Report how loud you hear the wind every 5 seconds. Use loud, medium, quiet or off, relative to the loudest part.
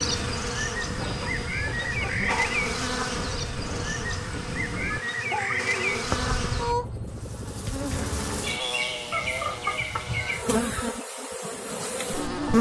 loud, loud, off.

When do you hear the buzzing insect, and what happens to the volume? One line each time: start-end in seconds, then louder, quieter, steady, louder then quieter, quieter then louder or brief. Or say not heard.
0.0-12.5 steady.